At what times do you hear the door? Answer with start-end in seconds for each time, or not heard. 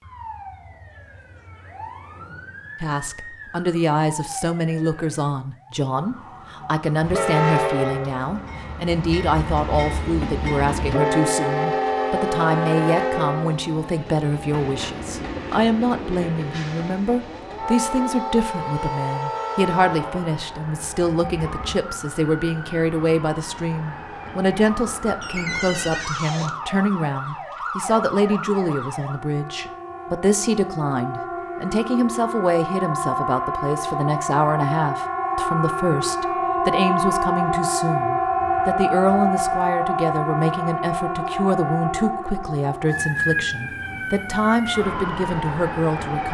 25.2-26.6.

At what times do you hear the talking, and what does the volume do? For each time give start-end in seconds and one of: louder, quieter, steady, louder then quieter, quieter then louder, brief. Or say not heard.
2.8-46.2 steady.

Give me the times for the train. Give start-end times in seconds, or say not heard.
7.0-21.8.